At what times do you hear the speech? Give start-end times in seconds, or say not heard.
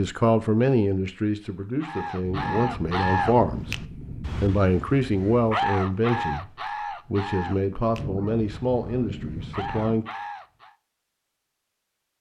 0.0-10.1.